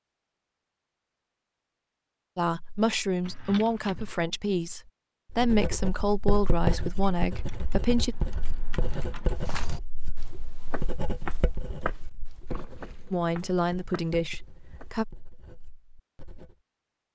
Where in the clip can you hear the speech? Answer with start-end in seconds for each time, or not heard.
2.4-8.2, 13.1-15.1.